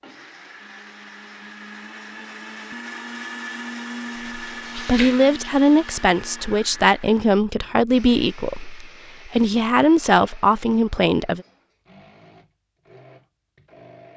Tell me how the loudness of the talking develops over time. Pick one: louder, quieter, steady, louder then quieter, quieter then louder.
steady.